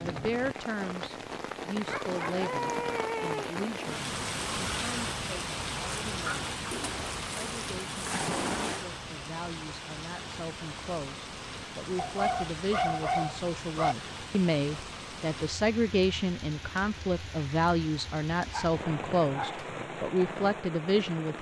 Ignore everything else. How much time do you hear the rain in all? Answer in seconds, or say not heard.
21 s.